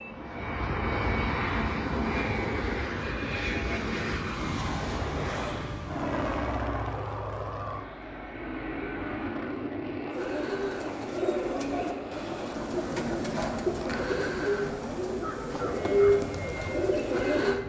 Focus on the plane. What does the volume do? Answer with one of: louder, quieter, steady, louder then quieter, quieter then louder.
quieter.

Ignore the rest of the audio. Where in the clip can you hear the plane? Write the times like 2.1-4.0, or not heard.
0.0-17.6.